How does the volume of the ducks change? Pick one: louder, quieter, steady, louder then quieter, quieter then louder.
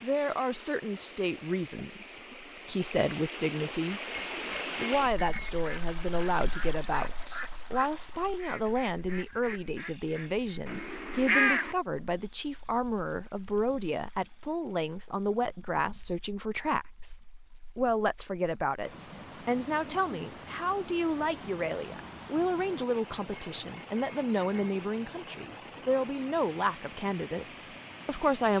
louder.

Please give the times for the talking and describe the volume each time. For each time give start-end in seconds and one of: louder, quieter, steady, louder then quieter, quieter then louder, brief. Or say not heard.
0.0-4.0 quieter then louder
4.8-28.5 steady.